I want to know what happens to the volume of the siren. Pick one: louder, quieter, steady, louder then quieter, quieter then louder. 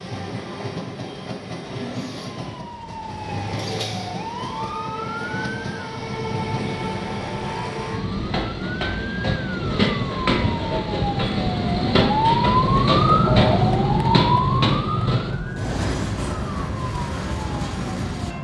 louder then quieter.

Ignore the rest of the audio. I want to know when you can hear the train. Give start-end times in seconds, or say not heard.
0.0-18.3.